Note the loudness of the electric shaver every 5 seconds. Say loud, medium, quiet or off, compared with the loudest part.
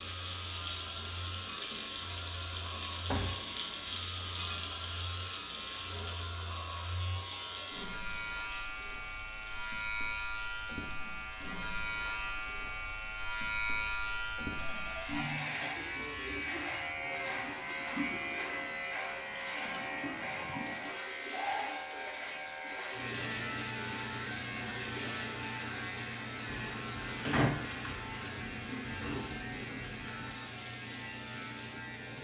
medium, medium, loud, loud, loud, medium, medium.